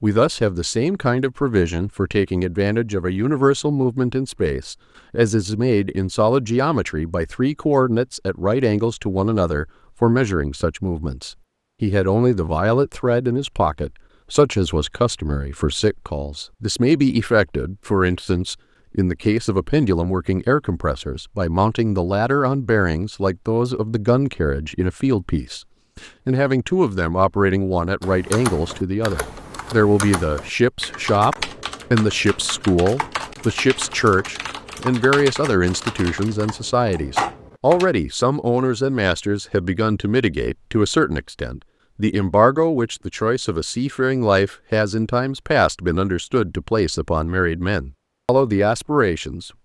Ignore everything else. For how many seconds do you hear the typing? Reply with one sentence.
The typing can be heard for 10 seconds in total.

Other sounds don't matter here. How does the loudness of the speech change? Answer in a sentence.
The volume of the speech stays about the same.